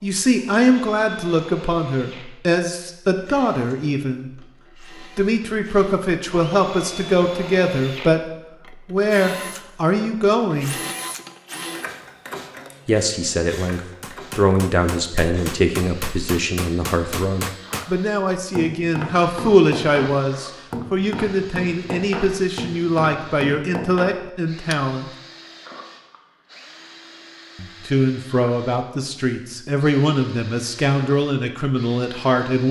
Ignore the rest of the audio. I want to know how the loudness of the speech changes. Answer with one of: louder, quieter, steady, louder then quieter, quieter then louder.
steady.